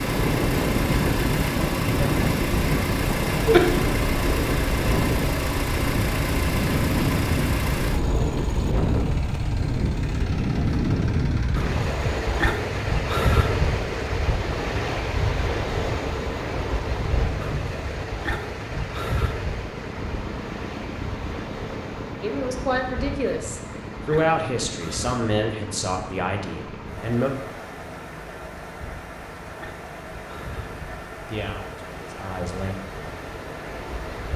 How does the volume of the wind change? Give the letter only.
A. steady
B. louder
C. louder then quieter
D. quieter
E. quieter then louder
D.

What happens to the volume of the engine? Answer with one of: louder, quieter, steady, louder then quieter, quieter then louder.
quieter.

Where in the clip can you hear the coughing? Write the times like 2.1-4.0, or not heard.
3.3-3.7.